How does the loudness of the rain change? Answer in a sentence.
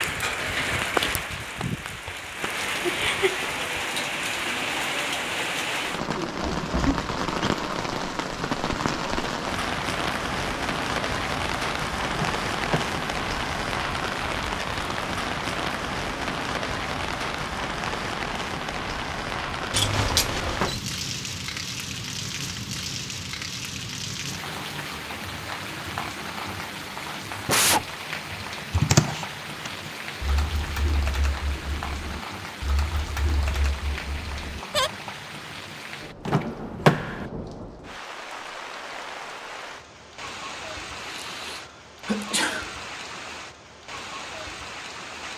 The volume of the rain goes down.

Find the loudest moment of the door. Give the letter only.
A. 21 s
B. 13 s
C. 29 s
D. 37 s
D.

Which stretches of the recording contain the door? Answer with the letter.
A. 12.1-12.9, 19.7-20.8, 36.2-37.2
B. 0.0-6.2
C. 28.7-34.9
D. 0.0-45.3
A.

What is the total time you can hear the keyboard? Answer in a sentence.
You can hear the keyboard for 6 seconds altogether.